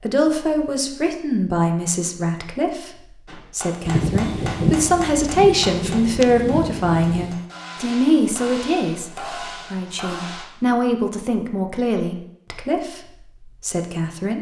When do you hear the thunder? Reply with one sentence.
You can hear the thunder from 3.9 to 7.3 s.